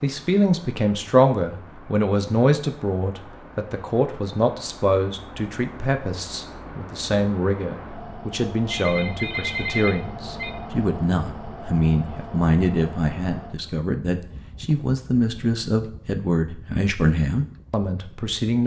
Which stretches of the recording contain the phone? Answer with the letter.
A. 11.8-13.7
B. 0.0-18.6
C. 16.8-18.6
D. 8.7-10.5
D.